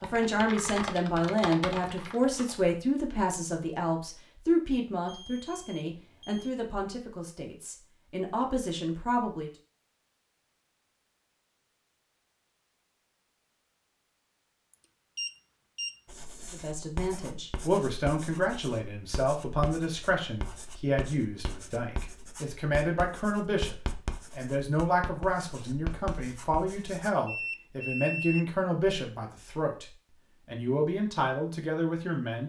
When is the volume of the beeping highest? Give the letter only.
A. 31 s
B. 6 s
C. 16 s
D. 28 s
D.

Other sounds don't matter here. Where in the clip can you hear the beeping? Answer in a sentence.
You can hear the beeping from 5.0 to 6.5 s, from 15.2 to 16.0 s and from 27.2 to 28.4 s.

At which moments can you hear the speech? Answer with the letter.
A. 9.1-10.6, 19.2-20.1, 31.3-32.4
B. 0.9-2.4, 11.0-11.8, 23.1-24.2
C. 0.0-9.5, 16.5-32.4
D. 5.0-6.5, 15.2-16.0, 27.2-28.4
C.